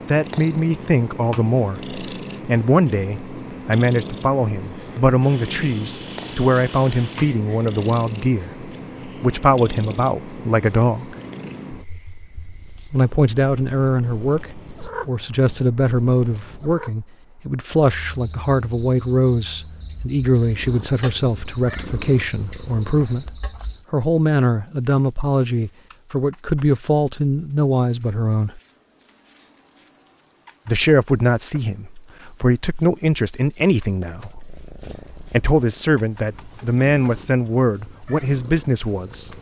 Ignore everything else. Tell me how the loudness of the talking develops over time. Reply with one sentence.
The volume of the talking stays about the same.